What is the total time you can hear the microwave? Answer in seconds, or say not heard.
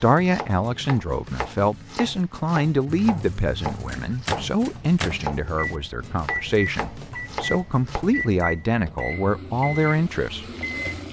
8 s.